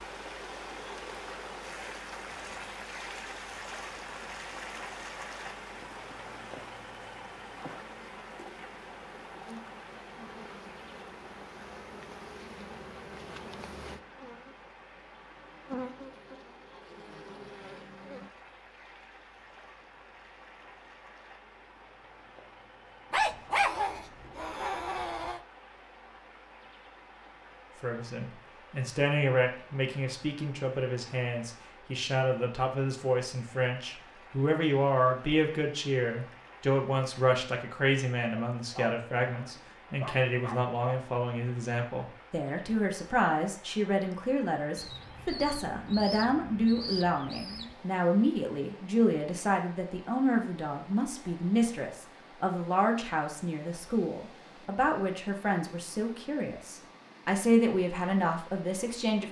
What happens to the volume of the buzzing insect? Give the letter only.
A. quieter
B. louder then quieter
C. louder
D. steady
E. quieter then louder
C.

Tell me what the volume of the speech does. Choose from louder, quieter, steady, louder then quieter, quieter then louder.
steady.